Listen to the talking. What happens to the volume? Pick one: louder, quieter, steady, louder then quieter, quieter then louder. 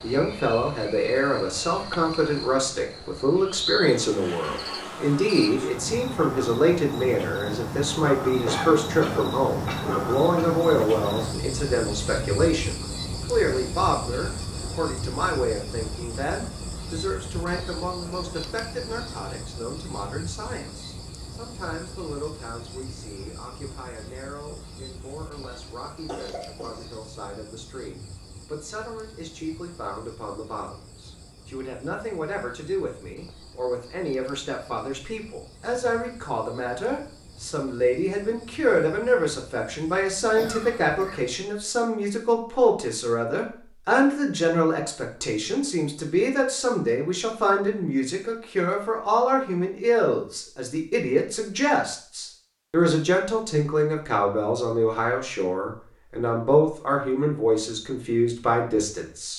quieter then louder.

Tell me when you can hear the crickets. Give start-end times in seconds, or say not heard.
0.0-41.2.